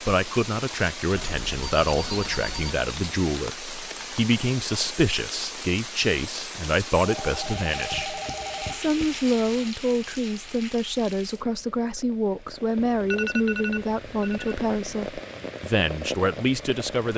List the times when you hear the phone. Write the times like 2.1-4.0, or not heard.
1.1-2.8, 7.0-9.1, 12.9-14.6.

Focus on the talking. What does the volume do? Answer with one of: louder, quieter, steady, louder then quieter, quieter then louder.
steady.